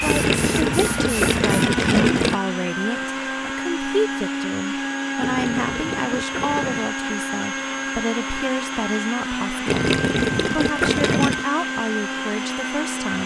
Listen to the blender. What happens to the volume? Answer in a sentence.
The loudness of the blender stays about the same.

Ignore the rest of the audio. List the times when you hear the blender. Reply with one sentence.
You can hear the blender from 0.0 to 13.2 s.